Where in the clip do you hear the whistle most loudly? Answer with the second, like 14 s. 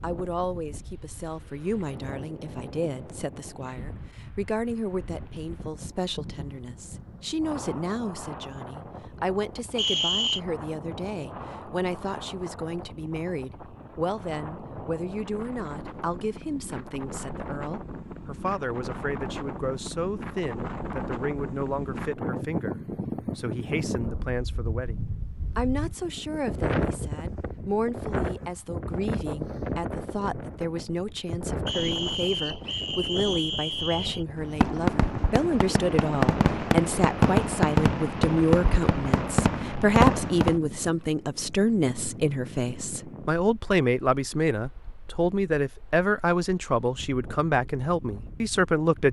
10 s.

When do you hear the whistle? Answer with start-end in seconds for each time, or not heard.
9.8-10.4, 31.6-34.2.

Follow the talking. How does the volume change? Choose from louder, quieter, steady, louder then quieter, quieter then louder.
louder.